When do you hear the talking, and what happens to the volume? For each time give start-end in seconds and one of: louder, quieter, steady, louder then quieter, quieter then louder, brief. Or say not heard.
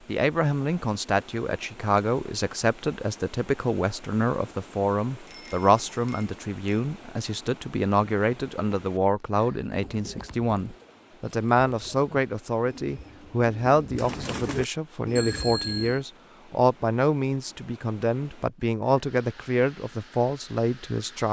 0.1-21.2 steady.